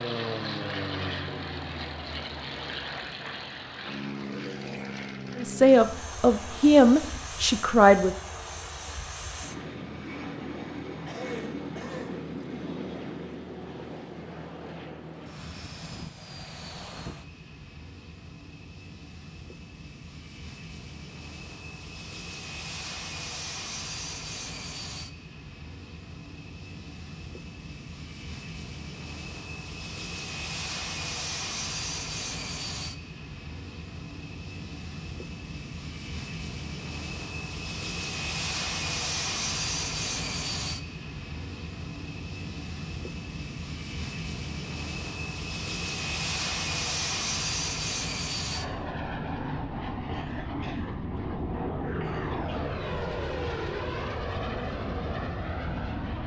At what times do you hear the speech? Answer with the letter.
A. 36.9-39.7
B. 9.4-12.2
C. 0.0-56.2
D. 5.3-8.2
D.